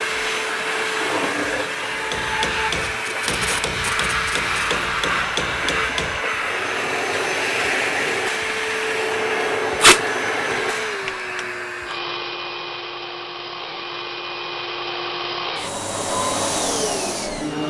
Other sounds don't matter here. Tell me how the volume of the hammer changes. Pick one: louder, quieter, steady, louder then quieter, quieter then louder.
steady.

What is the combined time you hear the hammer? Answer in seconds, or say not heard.
10 s.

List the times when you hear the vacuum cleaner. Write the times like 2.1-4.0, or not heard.
0.0-17.6.